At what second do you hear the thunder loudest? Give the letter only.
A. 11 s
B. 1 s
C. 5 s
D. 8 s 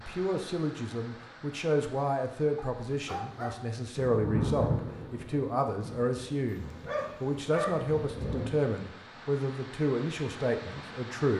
C.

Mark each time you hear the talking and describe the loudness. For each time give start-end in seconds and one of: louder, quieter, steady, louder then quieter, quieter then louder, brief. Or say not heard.
0.0-11.3 steady.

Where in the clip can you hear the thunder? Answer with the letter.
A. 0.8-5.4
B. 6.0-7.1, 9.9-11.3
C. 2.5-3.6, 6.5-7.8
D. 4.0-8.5
D.